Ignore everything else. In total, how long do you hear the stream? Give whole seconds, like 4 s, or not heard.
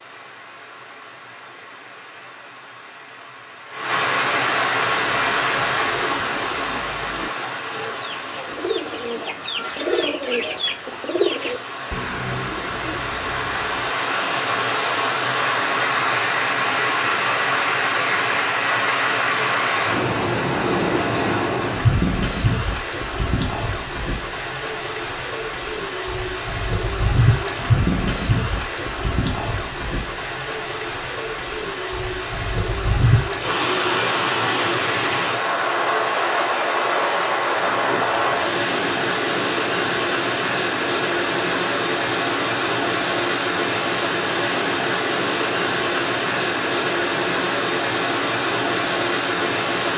50 s.